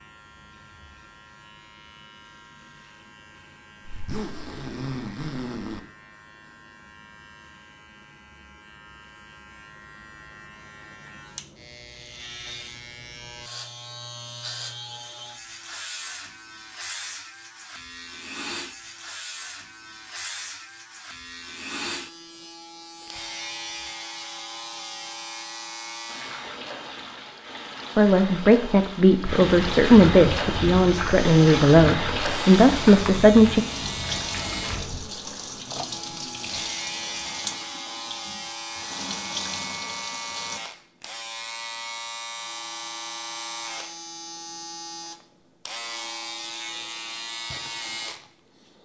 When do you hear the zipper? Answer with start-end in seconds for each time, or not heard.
3.9-5.8, 34.9-36.7.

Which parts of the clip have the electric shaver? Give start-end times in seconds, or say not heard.
0.0-26.6, 30.9-48.8.